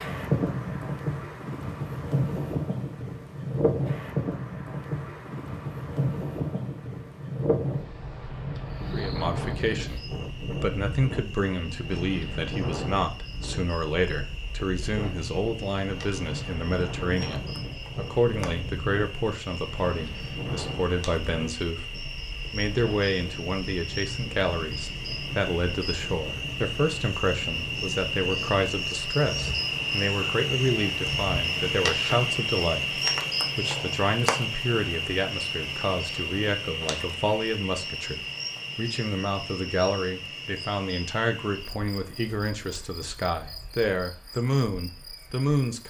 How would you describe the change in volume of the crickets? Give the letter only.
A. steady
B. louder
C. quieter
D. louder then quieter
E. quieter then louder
D.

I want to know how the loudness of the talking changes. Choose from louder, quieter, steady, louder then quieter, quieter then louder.
steady.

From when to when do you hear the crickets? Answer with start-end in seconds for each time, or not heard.
8.7-45.8.